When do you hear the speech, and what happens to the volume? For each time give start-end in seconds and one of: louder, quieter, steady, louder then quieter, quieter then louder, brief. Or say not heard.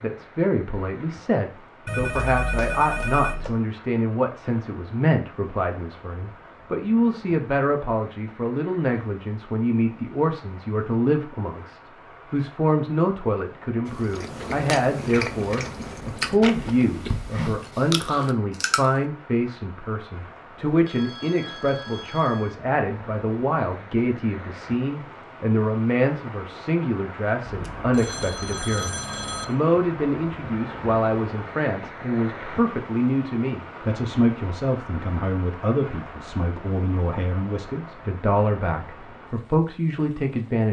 0.0-40.6 steady.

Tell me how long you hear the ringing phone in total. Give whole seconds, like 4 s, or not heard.
6 s.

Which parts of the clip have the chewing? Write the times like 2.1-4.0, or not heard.
13.8-18.9.